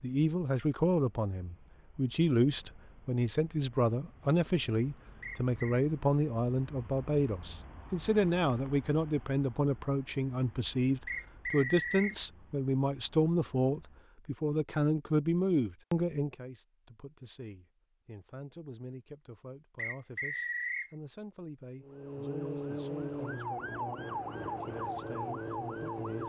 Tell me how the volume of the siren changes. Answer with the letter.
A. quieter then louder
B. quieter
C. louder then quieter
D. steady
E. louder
D.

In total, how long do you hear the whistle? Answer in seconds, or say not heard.
3 s.